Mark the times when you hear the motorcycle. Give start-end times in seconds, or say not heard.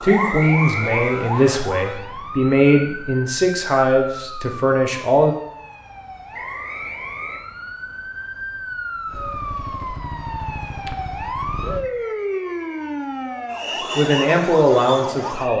9.1-11.8.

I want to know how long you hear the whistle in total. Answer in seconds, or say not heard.
4 s.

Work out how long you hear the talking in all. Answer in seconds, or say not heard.
7 s.